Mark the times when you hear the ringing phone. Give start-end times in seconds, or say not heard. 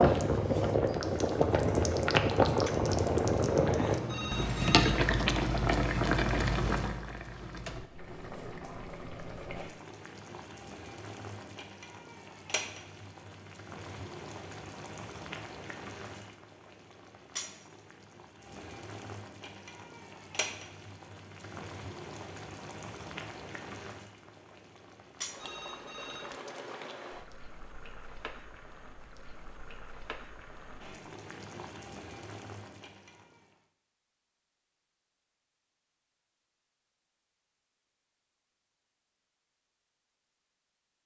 4.0-4.8, 25.4-26.4.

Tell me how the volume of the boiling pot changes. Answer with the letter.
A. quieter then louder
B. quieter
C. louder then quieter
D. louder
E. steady
B.